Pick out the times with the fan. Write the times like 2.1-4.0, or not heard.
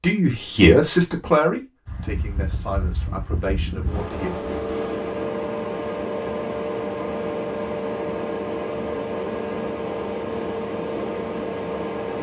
1.9-12.1.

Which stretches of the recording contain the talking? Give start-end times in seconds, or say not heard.
0.0-4.3.